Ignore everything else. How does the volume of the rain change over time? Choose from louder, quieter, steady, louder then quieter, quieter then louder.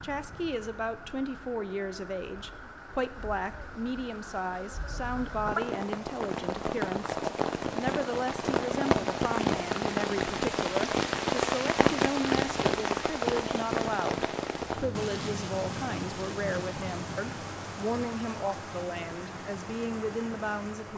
louder then quieter.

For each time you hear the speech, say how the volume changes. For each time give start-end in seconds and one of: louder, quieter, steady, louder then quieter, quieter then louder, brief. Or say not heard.
0.0-20.9 steady.